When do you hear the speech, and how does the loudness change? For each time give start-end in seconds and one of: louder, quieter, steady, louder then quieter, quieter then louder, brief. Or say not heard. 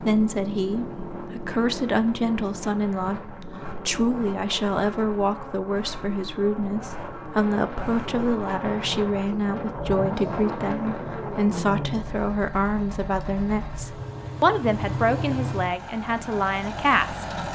0.0-17.2 steady.